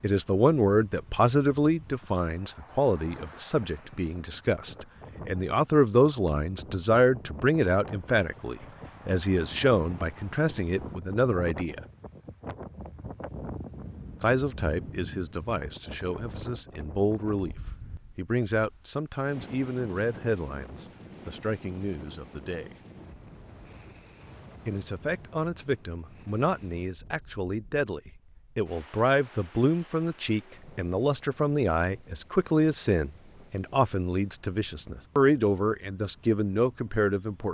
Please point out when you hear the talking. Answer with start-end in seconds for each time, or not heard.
0.0-11.8, 14.2-17.6, 18.1-22.8, 24.6-37.4.